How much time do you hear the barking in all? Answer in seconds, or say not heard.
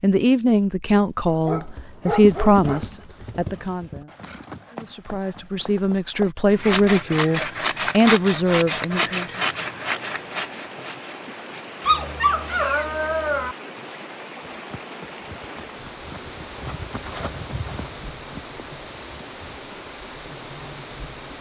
3 s.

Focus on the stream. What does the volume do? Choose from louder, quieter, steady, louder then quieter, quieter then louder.
steady.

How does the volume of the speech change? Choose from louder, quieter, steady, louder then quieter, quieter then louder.
quieter then louder.